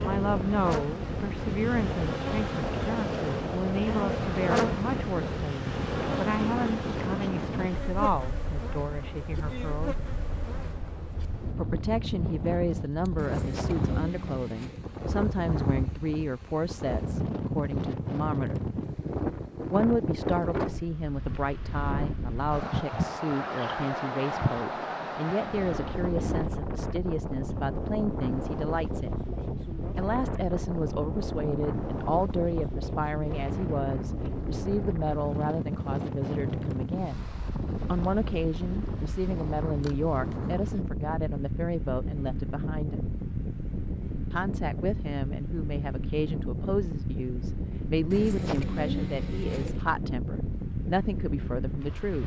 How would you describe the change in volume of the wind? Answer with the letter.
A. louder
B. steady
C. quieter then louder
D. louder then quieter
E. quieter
B.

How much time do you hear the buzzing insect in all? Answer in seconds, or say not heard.
11 s.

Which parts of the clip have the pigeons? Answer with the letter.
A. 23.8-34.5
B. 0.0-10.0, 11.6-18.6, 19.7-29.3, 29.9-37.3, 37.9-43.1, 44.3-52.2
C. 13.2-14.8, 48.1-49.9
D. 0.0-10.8
C.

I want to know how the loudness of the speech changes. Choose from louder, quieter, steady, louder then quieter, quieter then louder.
steady.